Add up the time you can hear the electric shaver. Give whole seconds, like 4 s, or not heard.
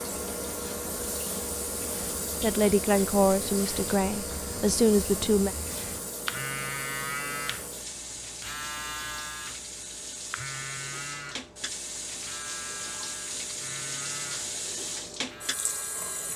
16 s.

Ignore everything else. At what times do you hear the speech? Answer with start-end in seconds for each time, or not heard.
2.4-5.5.